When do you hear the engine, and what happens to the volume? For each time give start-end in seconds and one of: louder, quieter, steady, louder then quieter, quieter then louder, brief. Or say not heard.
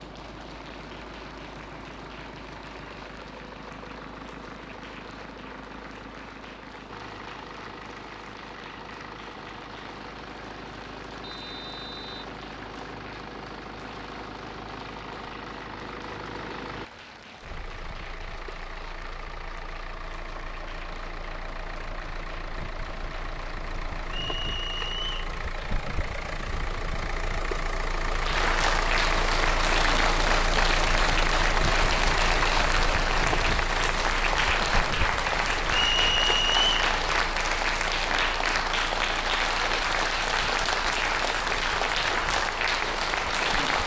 0.0-43.8 louder then quieter.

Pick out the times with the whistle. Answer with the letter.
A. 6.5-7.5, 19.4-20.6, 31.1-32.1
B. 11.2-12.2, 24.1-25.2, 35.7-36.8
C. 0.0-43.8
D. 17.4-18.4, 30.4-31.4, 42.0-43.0
B.